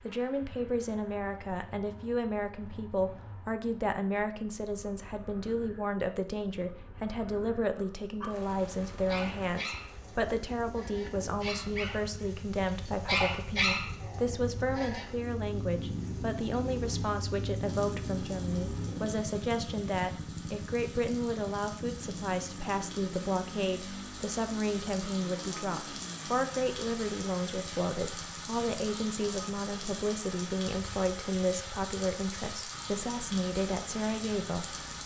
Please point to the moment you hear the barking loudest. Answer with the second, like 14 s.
14 s.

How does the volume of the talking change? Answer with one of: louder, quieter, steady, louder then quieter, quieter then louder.
steady.